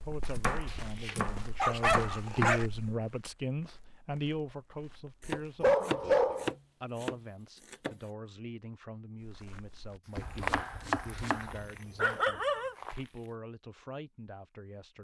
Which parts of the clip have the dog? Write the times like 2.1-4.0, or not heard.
0.7-2.6, 5.6-6.5, 10.2-12.8.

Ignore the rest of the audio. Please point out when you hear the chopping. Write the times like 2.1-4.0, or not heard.
0.2-2.5, 5.2-8.0, 10.2-11.5.